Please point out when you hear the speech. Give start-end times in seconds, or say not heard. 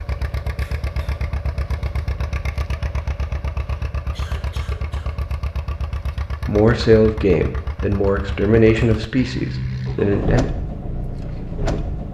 6.4-10.4.